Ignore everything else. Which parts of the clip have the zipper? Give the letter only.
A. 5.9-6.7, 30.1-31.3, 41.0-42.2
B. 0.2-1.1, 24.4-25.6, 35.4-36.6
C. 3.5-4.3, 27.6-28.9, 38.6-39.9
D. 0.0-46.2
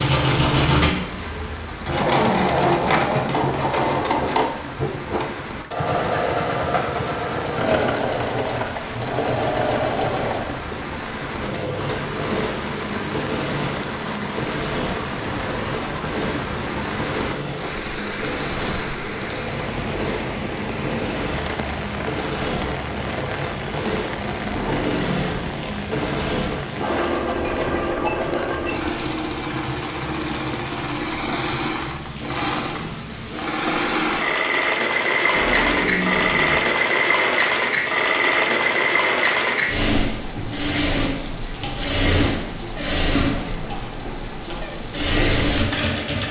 B.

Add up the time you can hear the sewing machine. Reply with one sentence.
The sewing machine can be heard for 46 seconds in total.